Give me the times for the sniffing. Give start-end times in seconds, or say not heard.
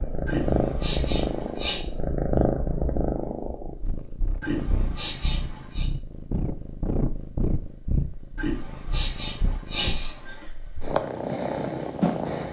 0.2-1.9, 4.4-5.8, 8.3-10.4.